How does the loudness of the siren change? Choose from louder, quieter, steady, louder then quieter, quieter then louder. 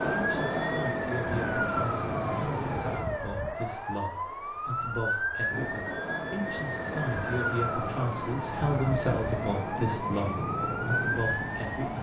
steady.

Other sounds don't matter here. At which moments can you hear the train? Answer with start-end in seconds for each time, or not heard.
0.0-3.0, 5.5-11.9.